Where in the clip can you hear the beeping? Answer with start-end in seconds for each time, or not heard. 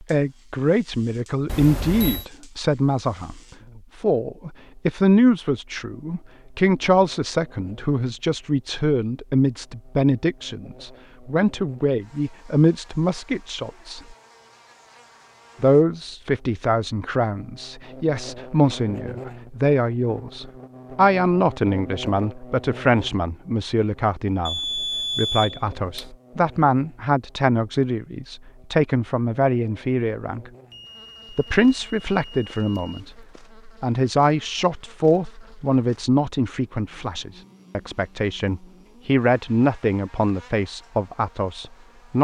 1.4-2.2, 24.4-26.1, 30.7-33.3.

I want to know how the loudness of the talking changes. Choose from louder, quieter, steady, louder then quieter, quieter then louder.
steady.